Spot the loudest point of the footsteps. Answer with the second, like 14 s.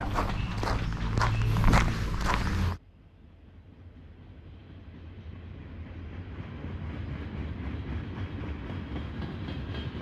2 s.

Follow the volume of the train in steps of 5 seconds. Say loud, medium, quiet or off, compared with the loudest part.
medium, loud.